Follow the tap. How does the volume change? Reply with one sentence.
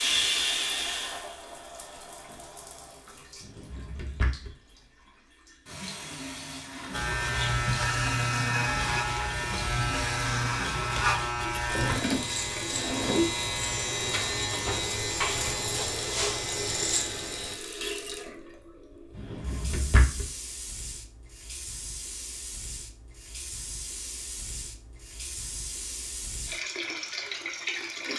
The volume of the tap stays about the same.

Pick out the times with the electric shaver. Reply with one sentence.
The electric shaver can be heard from 6.9 to 17.6 s.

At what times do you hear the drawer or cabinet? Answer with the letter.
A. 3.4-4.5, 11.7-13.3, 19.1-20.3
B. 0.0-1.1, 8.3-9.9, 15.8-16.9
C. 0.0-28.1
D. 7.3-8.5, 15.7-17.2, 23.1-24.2
A.